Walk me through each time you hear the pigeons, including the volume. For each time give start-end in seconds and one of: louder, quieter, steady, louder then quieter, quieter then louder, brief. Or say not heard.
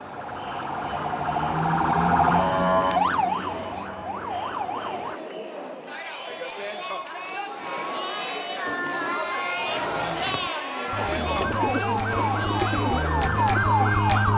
8.7-13.9 louder.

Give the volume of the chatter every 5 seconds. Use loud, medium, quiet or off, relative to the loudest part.
medium, loud, loud.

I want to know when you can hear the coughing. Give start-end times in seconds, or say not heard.
not heard.